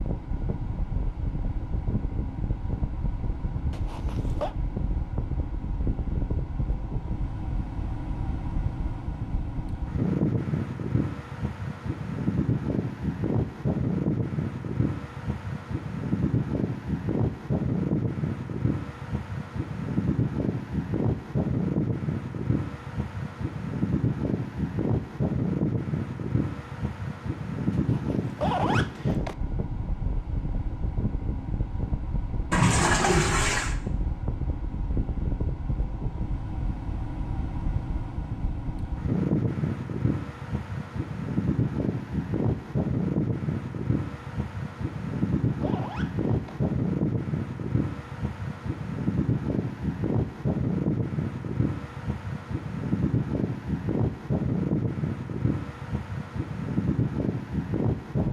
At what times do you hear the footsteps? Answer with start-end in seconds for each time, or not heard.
not heard.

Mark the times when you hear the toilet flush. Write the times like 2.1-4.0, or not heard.
32.5-33.8.